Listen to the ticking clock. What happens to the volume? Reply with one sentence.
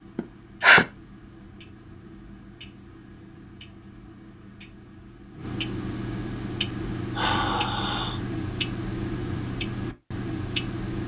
The loudness of the ticking clock goes up.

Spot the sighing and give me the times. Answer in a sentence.
The sighing can be heard from 0.1 to 0.8 s and from 7.2 to 8.2 s.